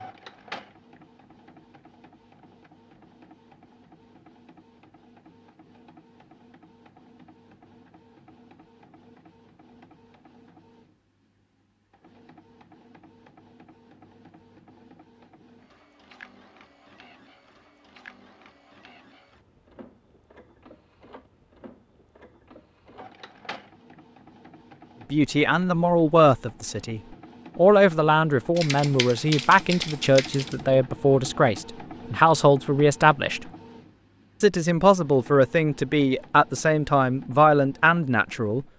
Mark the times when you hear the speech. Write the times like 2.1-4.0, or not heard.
25.1-33.5, 34.4-38.6.